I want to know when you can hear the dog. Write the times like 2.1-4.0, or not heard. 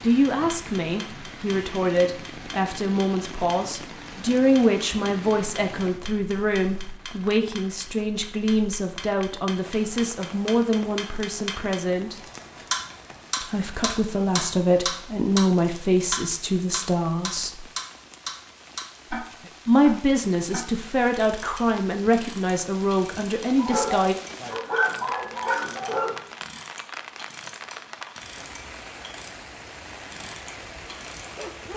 23.6-26.2.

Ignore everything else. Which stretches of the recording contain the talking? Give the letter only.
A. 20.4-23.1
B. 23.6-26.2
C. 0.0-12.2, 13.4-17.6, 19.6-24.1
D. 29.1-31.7
C.